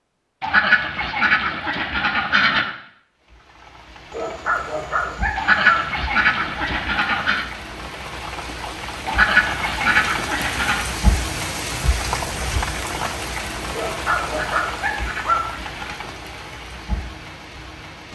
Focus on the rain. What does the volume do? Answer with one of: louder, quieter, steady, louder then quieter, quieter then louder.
louder then quieter.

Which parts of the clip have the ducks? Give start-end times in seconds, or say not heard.
0.4-2.8, 5.3-7.5, 9.1-10.8, 14.2-16.1.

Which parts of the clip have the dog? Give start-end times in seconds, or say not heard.
4.1-5.8, 13.7-15.4.